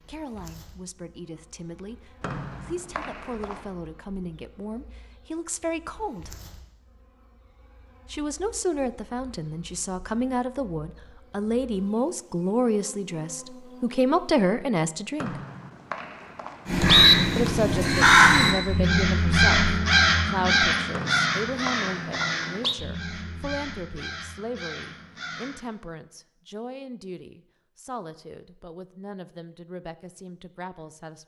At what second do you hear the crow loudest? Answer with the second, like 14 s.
18 s.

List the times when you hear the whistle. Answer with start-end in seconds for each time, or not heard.
2.2-3.5, 15.2-17.1, 20.9-22.8.